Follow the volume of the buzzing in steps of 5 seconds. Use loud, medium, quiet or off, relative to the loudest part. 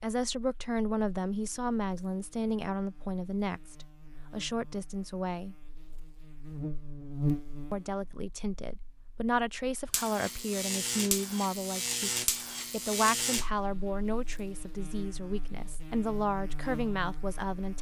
quiet, loud, loud, medium.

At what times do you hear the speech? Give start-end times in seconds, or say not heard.
0.0-5.5, 7.7-17.7.